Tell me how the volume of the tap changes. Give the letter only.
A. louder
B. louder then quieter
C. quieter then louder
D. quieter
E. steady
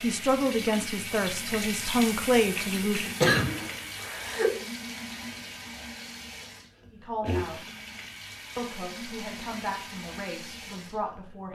D.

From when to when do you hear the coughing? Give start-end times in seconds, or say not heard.
3.2-4.5.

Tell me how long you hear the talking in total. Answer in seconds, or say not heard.
7 s.